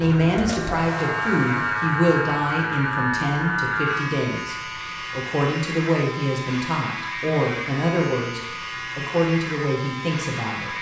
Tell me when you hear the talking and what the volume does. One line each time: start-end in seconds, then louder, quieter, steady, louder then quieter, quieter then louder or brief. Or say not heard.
0.0-10.7 steady.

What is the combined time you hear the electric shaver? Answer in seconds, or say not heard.
11 s.